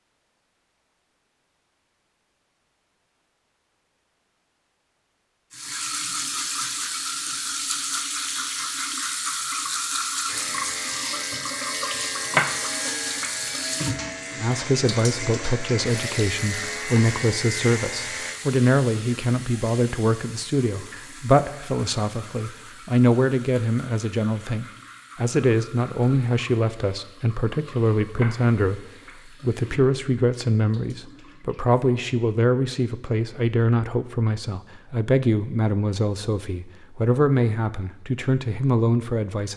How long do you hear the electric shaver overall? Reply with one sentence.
The electric shaver can be heard for 8 seconds in total.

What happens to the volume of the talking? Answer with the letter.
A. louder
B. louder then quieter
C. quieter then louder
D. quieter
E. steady
E.